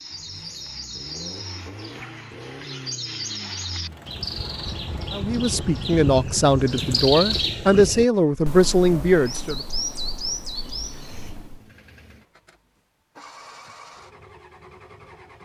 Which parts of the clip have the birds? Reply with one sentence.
You can hear the birds from 0.0 to 11.7 s.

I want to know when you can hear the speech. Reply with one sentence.
The speech can be heard from 5.1 to 9.6 s.